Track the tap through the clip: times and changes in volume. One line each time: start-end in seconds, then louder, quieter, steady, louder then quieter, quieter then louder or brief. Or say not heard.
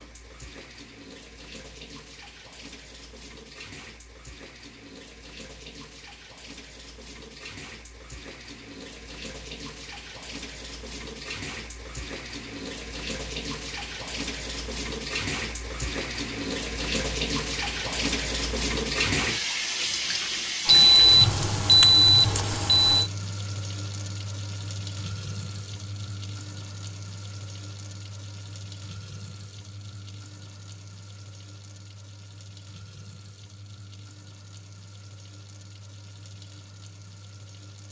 0.0-37.8 louder then quieter.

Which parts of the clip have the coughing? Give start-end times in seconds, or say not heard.
not heard.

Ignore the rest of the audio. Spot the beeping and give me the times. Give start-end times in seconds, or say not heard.
20.6-23.1.